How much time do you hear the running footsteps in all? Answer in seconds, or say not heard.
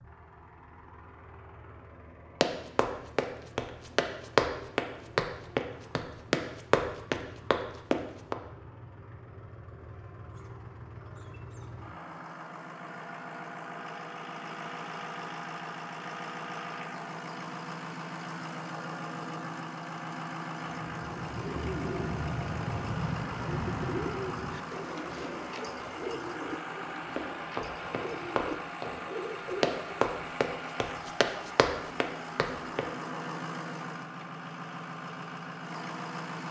11 s.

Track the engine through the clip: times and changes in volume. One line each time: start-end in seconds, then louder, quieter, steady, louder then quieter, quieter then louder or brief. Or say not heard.
0.0-36.4 louder.